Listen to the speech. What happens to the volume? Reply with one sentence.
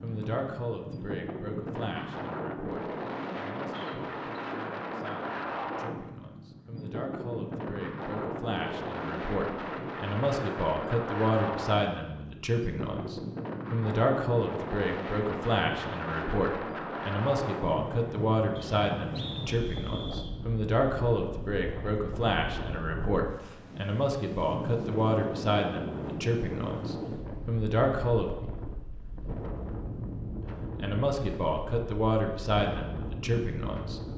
The loudness of the speech goes up.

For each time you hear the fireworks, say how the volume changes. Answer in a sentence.
The fireworks can't be heard in this clip.